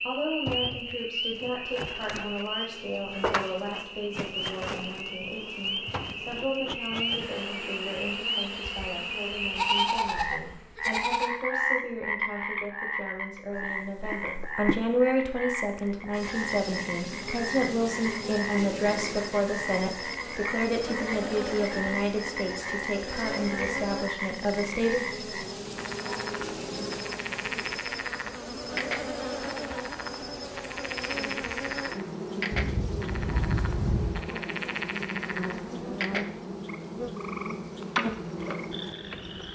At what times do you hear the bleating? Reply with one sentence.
You can hear the bleating from 9.6 to 11.3 s and from 32.5 to 34.2 s.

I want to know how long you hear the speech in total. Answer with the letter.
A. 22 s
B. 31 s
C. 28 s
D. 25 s
D.